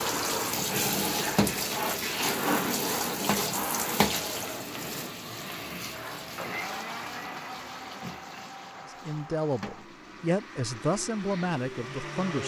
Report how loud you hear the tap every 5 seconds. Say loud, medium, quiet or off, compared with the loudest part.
loud, quiet, quiet.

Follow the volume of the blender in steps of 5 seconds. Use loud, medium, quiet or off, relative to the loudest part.
off, loud, loud.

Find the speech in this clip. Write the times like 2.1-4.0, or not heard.
8.8-12.4.